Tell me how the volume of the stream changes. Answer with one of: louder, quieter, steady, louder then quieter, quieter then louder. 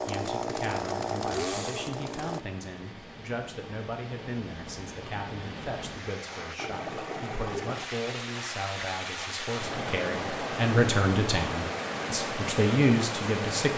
louder.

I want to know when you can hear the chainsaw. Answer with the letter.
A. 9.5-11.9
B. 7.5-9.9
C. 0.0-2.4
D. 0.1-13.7
C.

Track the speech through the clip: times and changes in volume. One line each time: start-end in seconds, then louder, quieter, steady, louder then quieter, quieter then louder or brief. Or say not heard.
0.1-13.7 louder.